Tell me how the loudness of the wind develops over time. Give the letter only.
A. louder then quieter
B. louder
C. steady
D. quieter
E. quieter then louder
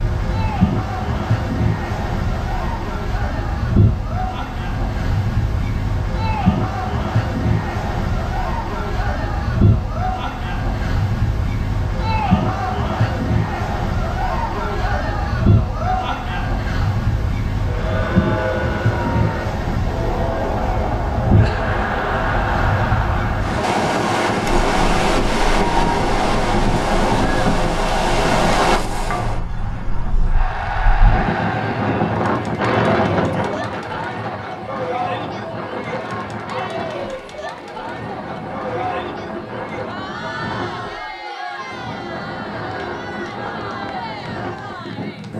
D.